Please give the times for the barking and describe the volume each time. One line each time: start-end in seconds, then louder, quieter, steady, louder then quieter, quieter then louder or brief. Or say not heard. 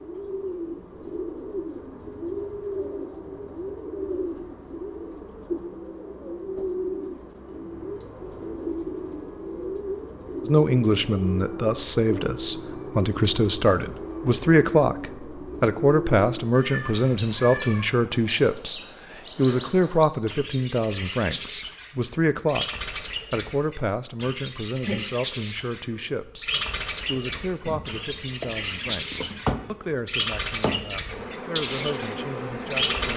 not heard.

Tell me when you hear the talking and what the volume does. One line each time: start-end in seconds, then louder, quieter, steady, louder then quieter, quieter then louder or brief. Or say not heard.
10.4-33.1 quieter.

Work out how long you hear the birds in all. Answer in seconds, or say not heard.
33 s.